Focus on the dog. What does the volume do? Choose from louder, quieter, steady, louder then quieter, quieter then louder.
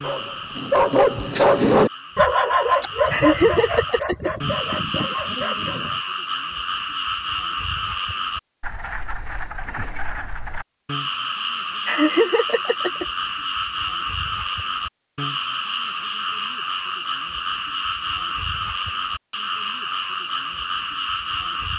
quieter.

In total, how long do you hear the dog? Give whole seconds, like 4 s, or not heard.
6 s.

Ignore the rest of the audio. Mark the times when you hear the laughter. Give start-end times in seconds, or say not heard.
3.1-4.3, 11.8-13.1.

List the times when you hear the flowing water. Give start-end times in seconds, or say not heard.
not heard.